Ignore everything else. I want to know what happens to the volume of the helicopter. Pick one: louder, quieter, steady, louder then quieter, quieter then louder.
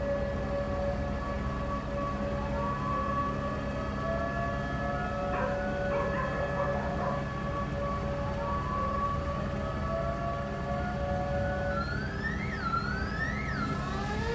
steady.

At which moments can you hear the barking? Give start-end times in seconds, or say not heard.
5.2-7.1.